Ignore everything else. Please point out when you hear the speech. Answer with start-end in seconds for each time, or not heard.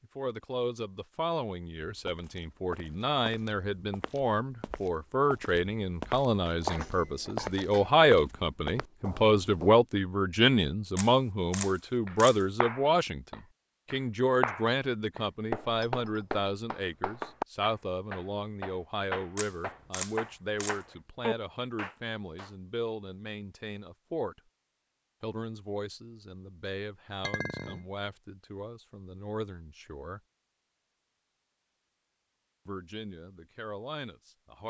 0.0-24.4, 25.2-30.2, 32.6-34.6.